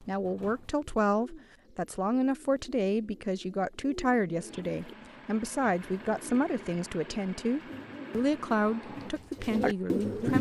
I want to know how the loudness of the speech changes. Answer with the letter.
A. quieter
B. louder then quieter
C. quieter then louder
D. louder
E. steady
E.